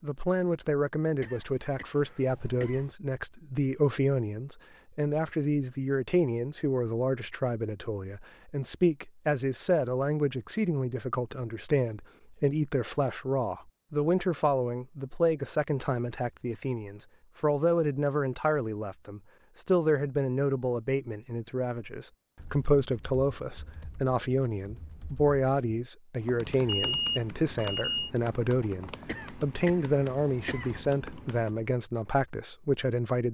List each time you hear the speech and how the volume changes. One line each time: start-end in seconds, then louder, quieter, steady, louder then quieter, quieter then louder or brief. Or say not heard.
0.0-33.2 steady.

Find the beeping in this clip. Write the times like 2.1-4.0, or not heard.
26.6-28.1.